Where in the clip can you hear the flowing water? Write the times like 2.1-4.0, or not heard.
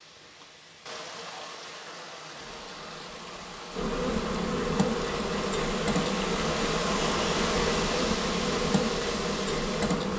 0.0-10.1.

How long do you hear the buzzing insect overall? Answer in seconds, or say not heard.
8 s.